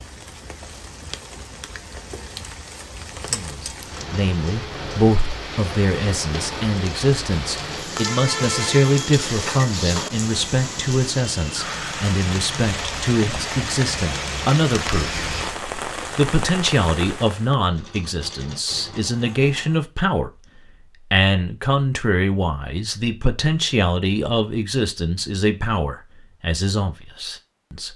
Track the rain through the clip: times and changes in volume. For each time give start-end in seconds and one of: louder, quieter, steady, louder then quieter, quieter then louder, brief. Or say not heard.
0.0-17.6 louder.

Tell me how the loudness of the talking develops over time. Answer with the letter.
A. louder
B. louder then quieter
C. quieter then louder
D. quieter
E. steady
E.